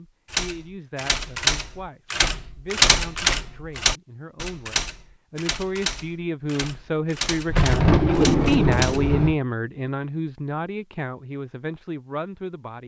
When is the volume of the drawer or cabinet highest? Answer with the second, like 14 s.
8 s.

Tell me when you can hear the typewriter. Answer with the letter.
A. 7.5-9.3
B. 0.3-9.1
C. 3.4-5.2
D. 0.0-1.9
B.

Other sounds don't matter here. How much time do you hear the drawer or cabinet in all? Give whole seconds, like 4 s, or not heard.
2 s.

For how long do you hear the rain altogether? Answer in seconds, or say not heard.
not heard.